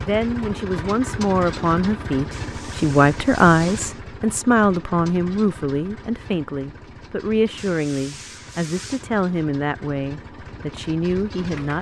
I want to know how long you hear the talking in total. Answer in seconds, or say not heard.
12 s.